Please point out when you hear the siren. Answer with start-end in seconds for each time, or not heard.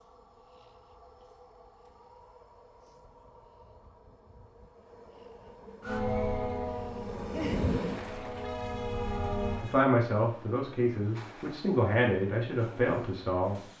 5.8-9.7.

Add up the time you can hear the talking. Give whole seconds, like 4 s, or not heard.
4 s.